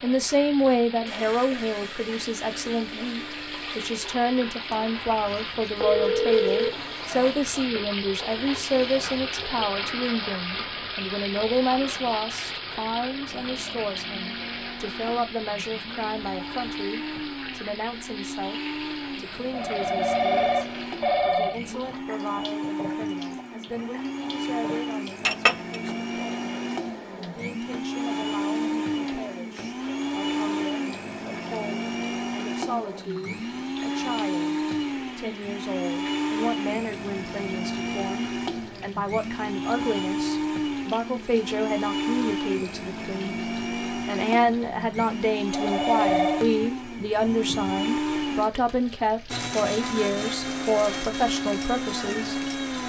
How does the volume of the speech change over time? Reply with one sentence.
The volume of the speech goes down, then up.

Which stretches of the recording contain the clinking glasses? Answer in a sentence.
The clinking glasses can be heard from 25.2 to 25.8 s.